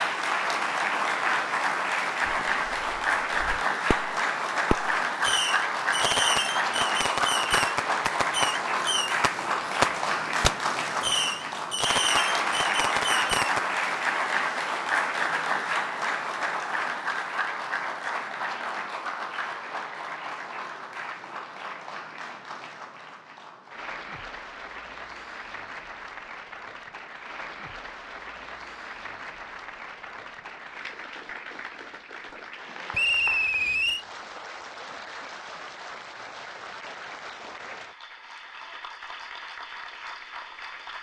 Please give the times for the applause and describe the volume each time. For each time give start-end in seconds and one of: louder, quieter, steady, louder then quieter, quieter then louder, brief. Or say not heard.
0.0-40.9 quieter.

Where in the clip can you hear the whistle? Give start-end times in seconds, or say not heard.
32.9-34.0.